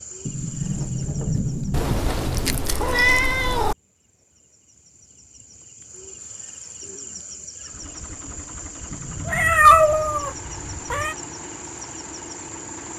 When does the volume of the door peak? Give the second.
1 s.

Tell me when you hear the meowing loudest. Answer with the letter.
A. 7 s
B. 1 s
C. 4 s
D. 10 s
D.